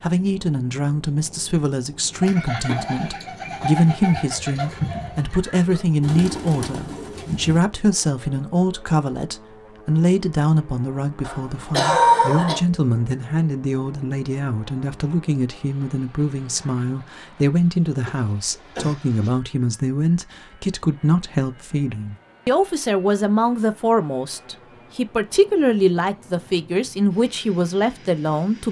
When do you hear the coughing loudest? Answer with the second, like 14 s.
12 s.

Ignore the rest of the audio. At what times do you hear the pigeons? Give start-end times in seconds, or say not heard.
2.1-7.6.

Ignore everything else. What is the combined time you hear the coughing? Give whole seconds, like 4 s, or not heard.
2 s.